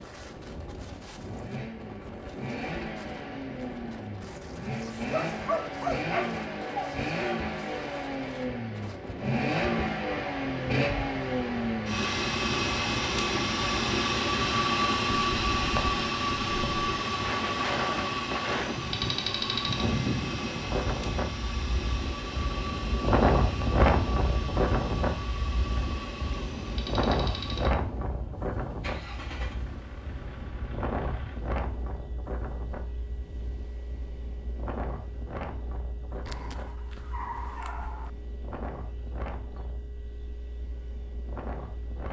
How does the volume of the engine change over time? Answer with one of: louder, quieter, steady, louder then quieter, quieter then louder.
louder then quieter.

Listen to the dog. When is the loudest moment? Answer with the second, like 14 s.
6 s.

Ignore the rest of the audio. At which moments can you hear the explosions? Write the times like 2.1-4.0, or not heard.
not heard.